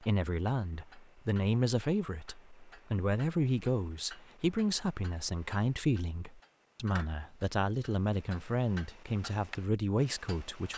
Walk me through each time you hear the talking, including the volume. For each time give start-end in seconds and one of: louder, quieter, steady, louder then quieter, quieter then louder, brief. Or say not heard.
0.0-10.7 steady.